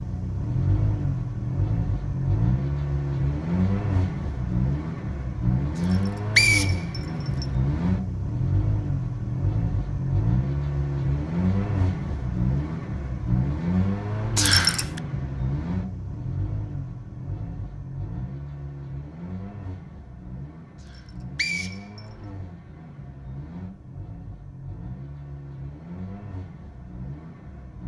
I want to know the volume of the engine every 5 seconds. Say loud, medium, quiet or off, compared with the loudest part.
loud, loud, loud, medium, quiet, quiet.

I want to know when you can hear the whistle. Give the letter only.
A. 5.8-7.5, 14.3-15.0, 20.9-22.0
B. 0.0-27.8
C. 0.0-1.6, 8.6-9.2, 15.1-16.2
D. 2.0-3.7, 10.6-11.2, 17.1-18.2
A.